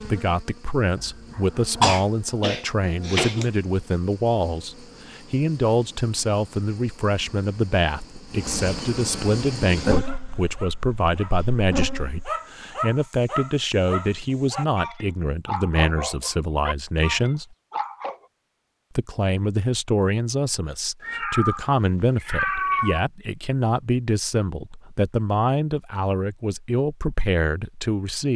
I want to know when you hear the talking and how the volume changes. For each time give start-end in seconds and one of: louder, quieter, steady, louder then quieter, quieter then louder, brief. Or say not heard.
0.1-17.4 steady
18.9-28.3 steady.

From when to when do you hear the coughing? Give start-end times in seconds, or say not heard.
0.9-3.5.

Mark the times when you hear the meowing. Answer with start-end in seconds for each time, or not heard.
21.0-23.0.